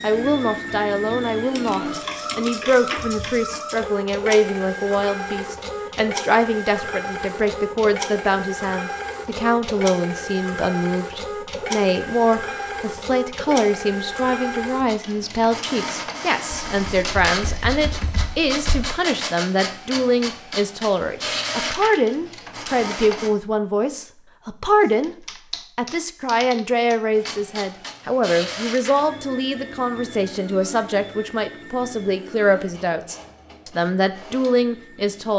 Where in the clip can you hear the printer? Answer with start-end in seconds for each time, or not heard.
0.0-23.3, 27.1-35.3.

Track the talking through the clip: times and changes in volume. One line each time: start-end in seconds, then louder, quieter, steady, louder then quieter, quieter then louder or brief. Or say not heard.
0.0-35.3 steady.